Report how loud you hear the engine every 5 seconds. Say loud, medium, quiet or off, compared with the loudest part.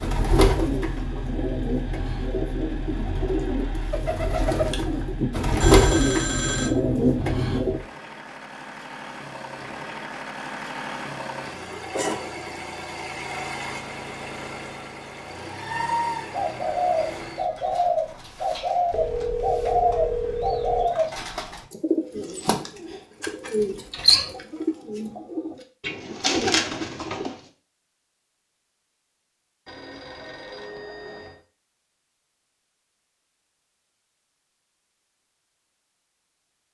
medium, medium, loud, loud, off, off, off, off.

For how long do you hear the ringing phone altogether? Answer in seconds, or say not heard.
5 s.